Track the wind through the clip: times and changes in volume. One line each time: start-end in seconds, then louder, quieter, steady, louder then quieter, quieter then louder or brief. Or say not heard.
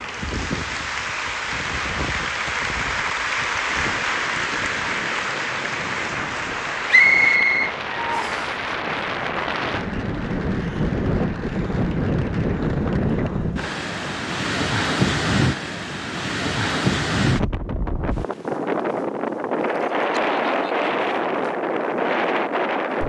0.0-23.0 louder.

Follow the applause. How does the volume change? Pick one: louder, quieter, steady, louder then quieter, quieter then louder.
quieter.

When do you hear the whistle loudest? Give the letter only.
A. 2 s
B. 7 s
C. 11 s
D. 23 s
B.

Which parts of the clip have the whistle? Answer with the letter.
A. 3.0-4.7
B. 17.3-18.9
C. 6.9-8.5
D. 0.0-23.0
C.